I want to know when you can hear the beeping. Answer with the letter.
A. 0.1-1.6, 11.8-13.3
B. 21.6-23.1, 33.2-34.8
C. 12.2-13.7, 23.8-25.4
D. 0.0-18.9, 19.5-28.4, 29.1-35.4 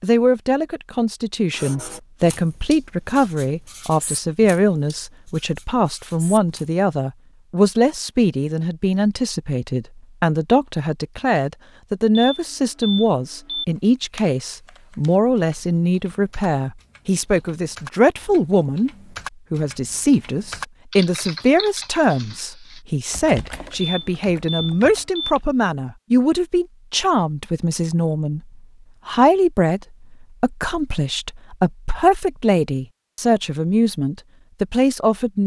C.